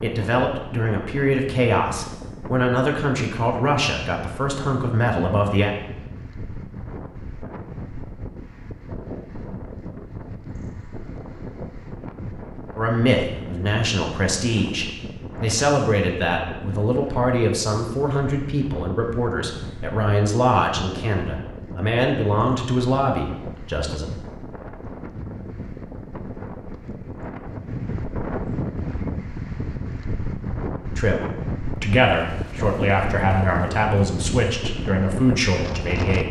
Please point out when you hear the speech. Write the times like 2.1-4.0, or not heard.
0.0-5.8, 12.8-24.1, 30.9-36.2.